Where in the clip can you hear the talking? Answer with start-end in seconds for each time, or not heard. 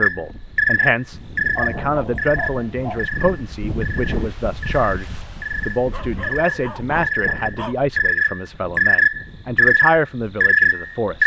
0.0-11.2.